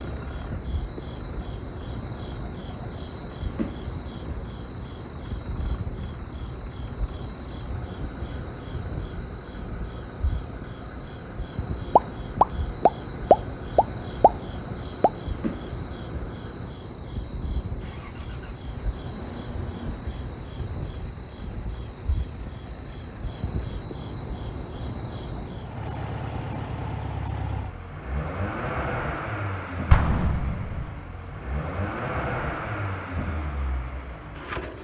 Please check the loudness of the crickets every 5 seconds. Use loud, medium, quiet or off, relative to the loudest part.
loud, loud, loud, loud, loud, medium, quiet.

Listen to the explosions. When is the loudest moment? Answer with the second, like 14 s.
13 s.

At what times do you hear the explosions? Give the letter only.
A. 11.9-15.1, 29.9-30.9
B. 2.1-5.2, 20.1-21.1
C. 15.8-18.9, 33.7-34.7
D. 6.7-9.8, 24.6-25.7
A.